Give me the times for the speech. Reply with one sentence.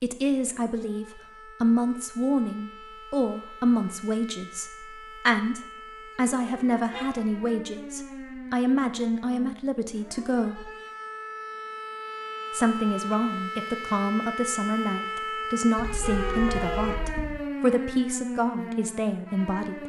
The speech can be heard from 0.0 to 10.7 s and from 12.5 to 19.8 s.